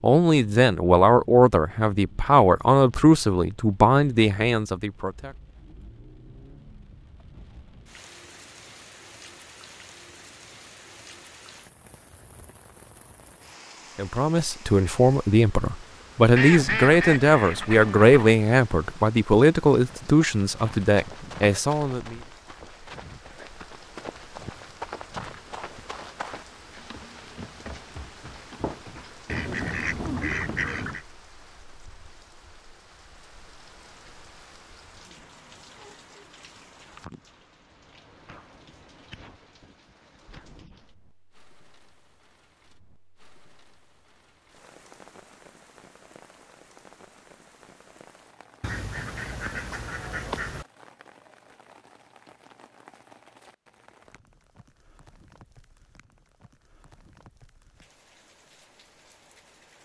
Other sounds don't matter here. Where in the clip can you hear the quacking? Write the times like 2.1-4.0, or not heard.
16.4-18.4, 29.2-31.1, 48.6-50.6.